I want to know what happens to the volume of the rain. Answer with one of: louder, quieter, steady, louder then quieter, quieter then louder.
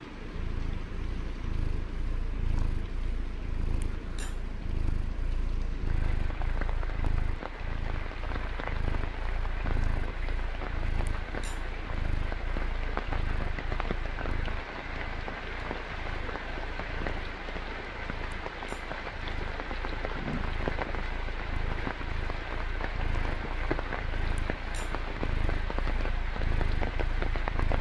louder.